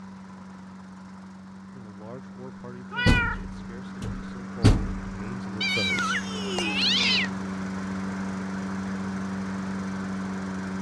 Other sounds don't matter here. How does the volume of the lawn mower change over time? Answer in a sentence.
The loudness of the lawn mower goes up.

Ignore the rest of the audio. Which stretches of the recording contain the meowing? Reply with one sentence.
You can hear the meowing from 2.9 to 3.4 s and from 5.6 to 7.3 s.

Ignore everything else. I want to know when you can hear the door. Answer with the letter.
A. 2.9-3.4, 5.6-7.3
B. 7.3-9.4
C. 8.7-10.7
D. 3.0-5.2
D.